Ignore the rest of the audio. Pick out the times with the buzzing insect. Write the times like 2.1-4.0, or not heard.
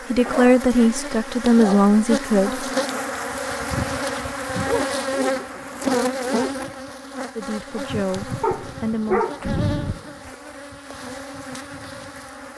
0.0-12.5.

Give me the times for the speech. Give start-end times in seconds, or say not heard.
0.1-2.7, 7.3-9.2.